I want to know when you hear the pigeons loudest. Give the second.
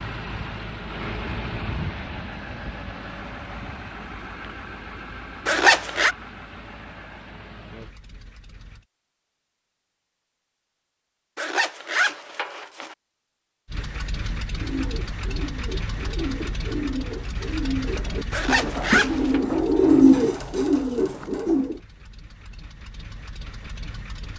20 s.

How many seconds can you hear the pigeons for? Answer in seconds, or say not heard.
7 s.